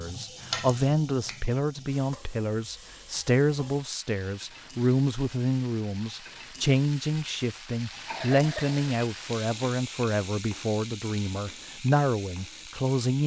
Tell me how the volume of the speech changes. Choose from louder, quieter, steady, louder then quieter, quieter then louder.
steady.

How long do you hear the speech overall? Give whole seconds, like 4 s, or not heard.
13 s.